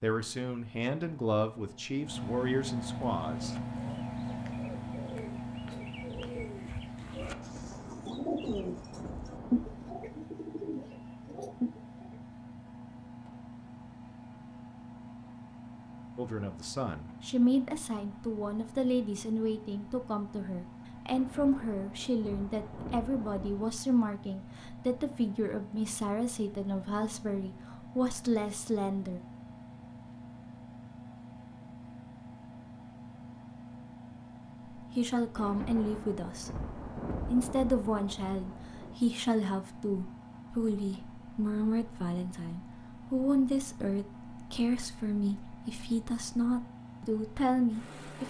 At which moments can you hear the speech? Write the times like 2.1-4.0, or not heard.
0.0-3.5, 16.1-29.2, 34.8-48.2.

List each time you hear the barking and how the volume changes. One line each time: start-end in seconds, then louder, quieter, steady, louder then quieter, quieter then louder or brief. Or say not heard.
not heard.